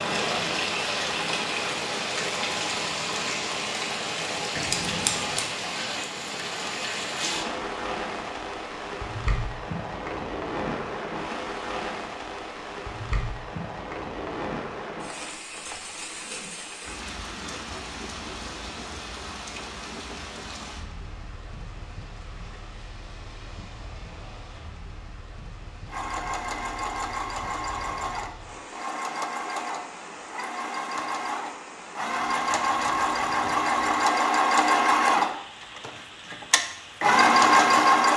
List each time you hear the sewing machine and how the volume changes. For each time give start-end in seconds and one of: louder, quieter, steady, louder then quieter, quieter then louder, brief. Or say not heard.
25.9-38.1 louder.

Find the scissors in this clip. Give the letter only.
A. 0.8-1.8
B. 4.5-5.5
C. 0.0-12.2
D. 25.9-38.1
B.